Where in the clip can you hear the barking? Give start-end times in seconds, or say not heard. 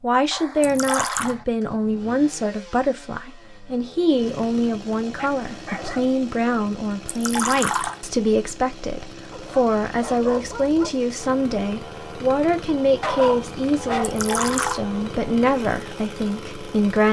0.3-1.4, 5.0-6.1, 9.3-10.9, 13.0-14.8.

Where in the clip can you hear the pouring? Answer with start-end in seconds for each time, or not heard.
0.6-1.4, 7.0-8.0, 14.0-14.8.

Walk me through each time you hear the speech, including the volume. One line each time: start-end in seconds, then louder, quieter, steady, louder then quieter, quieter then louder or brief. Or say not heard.
0.0-17.0 steady.